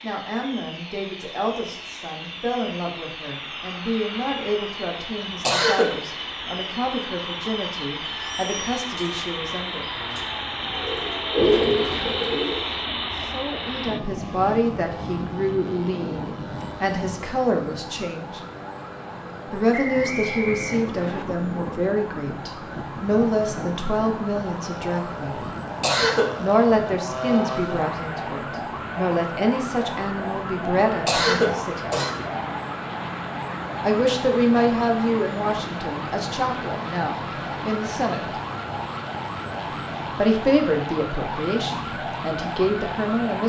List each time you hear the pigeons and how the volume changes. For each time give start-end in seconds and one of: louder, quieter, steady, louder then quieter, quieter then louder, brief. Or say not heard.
7.9-12.7 quieter then louder.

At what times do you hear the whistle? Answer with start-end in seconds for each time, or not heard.
19.7-21.2.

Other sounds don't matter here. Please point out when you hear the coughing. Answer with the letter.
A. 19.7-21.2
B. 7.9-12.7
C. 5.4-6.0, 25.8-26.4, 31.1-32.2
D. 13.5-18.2
C.